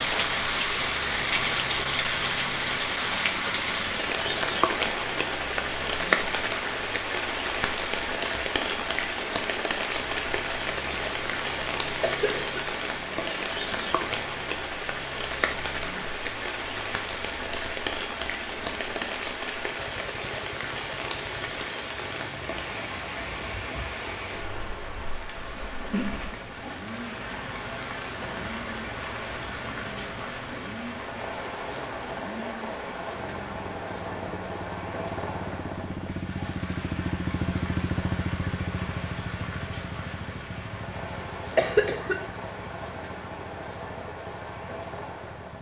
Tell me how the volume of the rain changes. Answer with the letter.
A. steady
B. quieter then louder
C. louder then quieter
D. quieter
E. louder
D.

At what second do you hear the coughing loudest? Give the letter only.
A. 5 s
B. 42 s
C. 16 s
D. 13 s
B.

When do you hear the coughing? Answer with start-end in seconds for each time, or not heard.
12.0-12.6, 41.5-42.2.